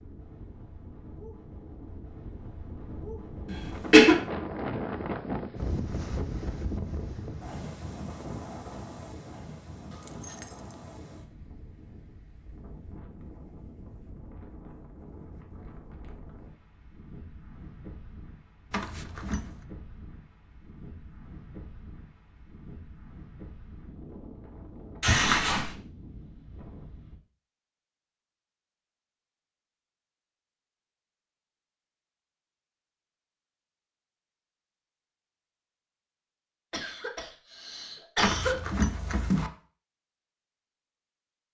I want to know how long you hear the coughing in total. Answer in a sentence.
You can hear the coughing for 3 seconds altogether.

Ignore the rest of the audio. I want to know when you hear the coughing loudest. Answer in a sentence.
The volume of the coughing peaks at 4 seconds.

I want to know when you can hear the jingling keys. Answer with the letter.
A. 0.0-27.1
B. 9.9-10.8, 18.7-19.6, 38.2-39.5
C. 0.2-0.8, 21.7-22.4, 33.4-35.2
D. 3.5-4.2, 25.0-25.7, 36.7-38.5
B.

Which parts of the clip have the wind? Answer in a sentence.
The wind can be heard from 0.0 to 27.1 s.